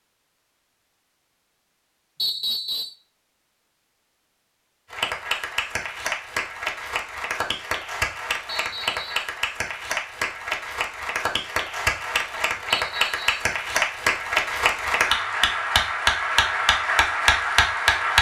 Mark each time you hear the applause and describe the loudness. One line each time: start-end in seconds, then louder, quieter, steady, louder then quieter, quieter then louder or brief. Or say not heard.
4.9-18.1 louder.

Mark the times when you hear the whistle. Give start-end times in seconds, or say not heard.
2.1-3.0, 8.4-9.3, 12.7-13.3.